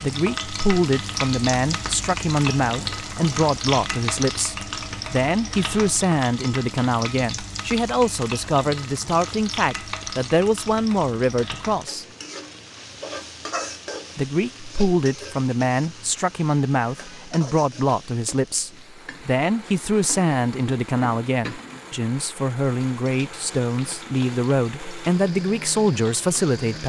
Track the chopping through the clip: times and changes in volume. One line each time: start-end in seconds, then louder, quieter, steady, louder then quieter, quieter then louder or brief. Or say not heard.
not heard.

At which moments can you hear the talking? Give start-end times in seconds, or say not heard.
0.0-12.1, 14.2-26.8.